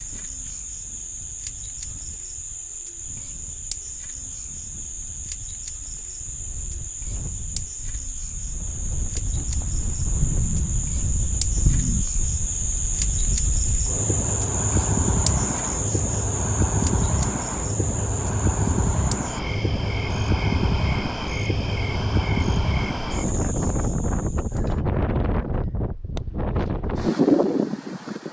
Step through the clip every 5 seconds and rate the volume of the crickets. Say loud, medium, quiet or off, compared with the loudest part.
medium, medium, loud, loud, medium, off.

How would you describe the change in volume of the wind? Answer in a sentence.
The volume of the wind goes up.